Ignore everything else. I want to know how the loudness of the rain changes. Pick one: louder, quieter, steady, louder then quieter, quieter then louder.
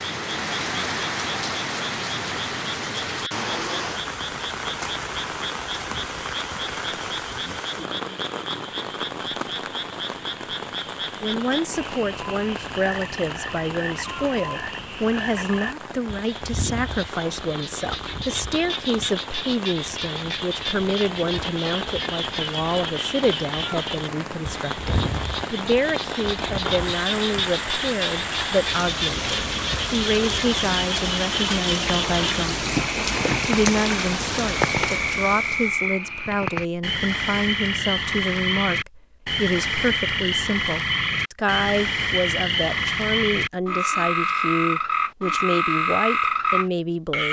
quieter then louder.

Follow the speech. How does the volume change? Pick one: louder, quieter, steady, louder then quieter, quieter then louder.
steady.